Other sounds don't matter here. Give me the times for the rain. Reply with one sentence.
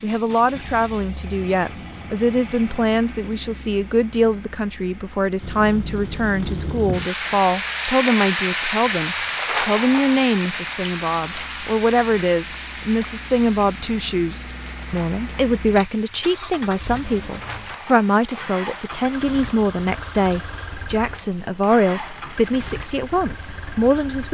The rain can be heard from 5.4 to 24.3 s.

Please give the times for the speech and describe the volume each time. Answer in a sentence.
The speech can be heard from 0.0 to 24.3 s, at a steady volume.